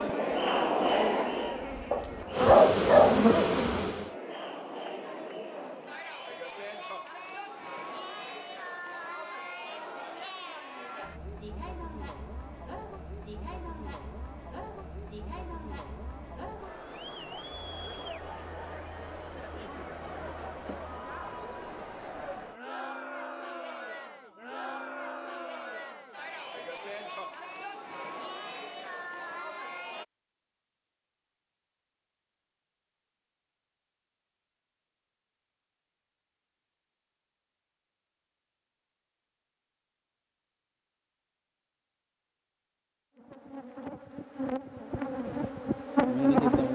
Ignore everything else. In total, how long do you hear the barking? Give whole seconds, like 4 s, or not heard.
2 s.